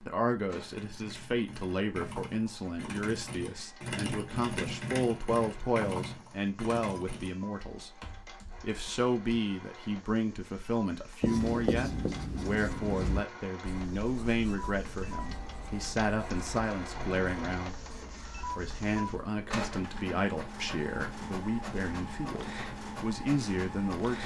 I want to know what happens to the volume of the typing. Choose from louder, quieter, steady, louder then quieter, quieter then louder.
louder then quieter.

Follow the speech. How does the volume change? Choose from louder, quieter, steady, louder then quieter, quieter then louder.
steady.